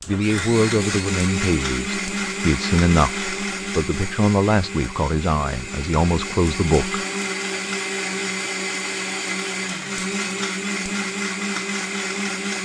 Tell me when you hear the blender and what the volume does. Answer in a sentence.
The blender can be heard from 0.0 to 12.5 s, at a steady volume.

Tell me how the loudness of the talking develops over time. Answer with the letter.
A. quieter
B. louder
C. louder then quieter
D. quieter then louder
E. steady
E.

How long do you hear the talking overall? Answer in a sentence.
The talking can be heard for 7 seconds in total.